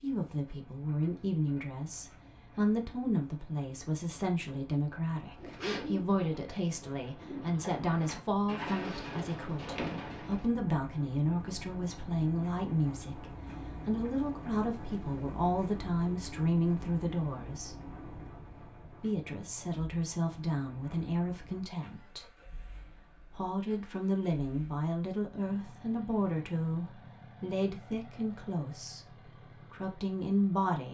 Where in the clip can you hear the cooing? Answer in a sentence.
The cooing can be heard from 5.3 to 10.4 s.